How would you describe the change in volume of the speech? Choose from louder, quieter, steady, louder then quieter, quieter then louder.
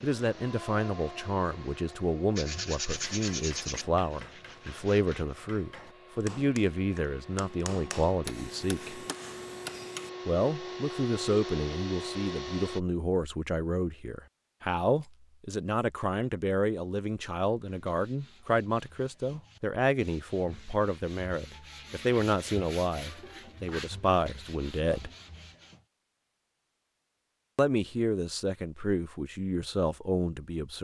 steady.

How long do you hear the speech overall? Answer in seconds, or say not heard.
27 s.